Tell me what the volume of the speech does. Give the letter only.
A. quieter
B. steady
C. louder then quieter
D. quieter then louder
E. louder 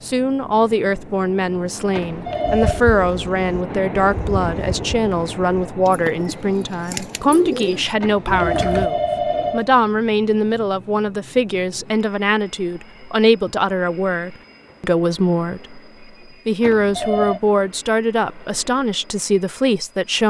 B.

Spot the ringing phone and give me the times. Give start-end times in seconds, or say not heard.
1.9-2.8, 8.0-9.7, 16.6-17.4.